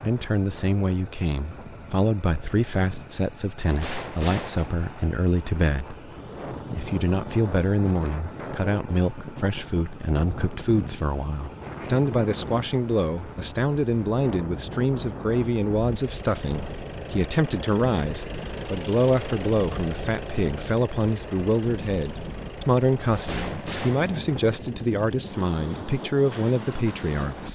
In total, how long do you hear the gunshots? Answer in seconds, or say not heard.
3 s.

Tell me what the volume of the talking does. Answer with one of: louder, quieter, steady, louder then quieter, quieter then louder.
steady.